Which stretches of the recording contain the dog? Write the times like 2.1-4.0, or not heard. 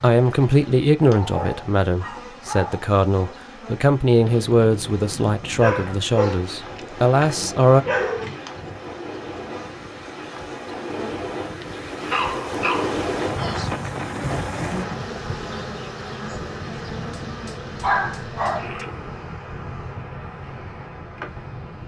1.1-3.4, 5.6-8.3, 12.1-13.7, 17.1-18.9.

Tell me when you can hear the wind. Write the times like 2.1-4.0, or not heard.
4.1-21.8.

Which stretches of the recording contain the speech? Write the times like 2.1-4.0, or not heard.
0.0-7.8.